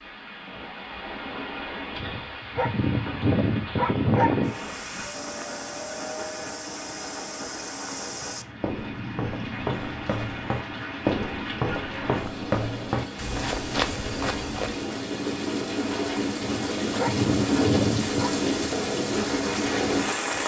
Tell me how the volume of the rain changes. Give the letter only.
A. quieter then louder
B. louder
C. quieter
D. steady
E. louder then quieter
B.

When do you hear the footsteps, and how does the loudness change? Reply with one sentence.
The footsteps can be heard from 4.5 to 14.8 s, getting louder.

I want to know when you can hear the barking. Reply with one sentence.
The barking can be heard from 2.0 to 4.5 s and from 16.4 to 18.3 s.